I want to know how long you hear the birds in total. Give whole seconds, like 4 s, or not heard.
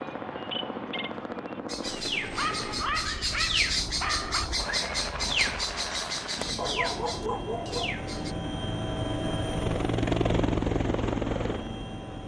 8 s.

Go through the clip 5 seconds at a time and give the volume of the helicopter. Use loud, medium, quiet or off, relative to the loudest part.
medium, medium, loud.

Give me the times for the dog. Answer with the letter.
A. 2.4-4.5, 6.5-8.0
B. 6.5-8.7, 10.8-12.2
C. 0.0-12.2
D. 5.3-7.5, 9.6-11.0
A.